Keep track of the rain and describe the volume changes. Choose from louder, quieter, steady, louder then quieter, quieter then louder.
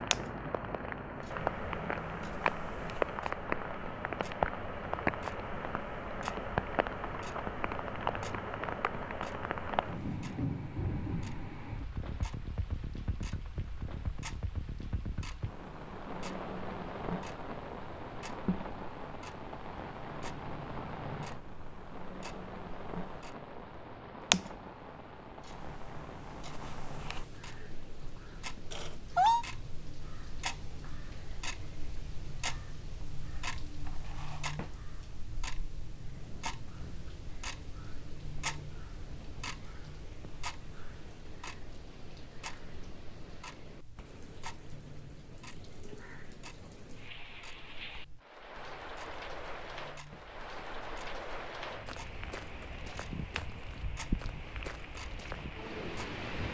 quieter then louder.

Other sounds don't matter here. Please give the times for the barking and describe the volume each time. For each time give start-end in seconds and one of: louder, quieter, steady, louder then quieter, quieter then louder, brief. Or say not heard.
not heard.